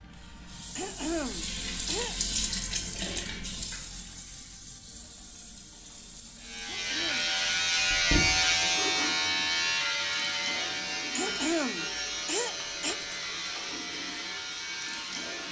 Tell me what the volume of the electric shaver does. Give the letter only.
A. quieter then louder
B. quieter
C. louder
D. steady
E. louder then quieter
B.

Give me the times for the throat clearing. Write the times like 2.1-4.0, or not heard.
0.8-2.1, 6.7-7.4, 11.2-12.9.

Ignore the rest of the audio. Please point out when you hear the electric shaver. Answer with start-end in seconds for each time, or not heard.
6.4-15.4.